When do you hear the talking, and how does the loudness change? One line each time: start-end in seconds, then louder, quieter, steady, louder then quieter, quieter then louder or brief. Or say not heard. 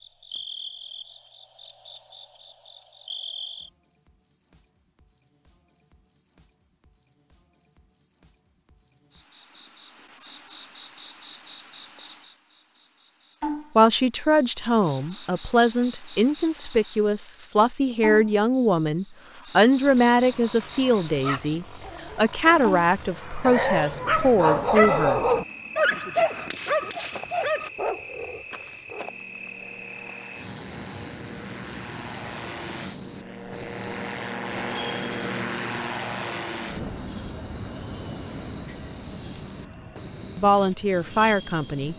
13.8-25.2 steady
40.4-41.9 brief.